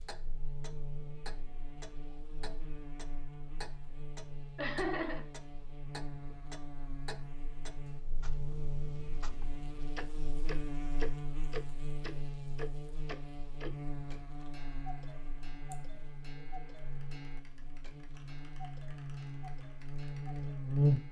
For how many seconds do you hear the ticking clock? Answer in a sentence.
The ticking clock can be heard for 21 seconds in total.